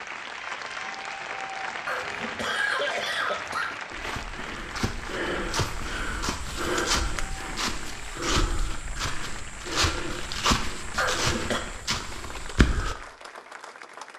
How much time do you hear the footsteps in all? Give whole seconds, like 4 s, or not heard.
9 s.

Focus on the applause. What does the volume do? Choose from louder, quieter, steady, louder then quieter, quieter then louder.
quieter.